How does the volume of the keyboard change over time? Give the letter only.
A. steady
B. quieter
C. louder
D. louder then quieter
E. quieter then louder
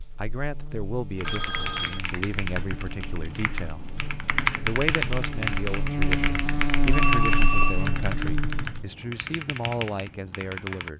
D.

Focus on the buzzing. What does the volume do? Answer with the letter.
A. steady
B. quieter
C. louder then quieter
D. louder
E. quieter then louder
D.